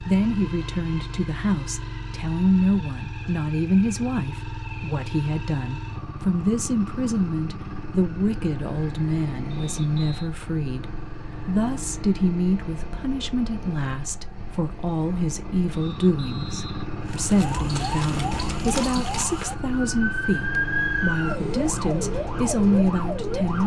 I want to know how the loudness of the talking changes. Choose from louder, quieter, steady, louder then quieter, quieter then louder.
steady.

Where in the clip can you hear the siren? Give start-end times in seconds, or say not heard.
17.0-23.6.